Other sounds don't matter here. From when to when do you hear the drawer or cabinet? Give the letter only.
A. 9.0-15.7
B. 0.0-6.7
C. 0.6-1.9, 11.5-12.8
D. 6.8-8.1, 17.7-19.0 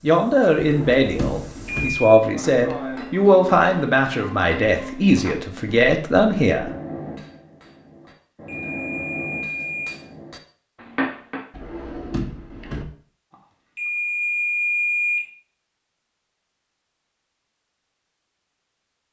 C.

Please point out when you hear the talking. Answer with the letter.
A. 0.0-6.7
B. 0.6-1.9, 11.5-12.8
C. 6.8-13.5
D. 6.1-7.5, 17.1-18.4
A.